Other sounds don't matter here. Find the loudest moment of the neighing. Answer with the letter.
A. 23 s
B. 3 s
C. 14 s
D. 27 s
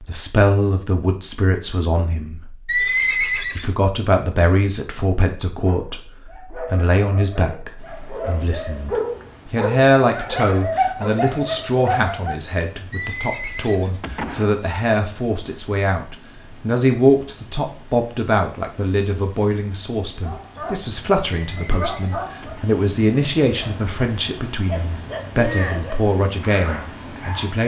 B.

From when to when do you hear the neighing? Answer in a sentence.
The neighing can be heard from 2.6 to 3.7 s, from 12.9 to 14.5 s and from 21.6 to 22.6 s.